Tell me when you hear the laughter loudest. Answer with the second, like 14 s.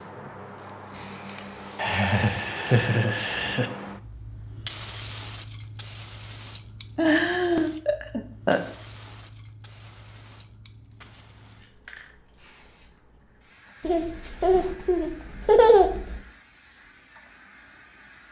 16 s.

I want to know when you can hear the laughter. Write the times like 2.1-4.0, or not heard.
1.8-3.7, 7.0-8.6, 13.8-16.2.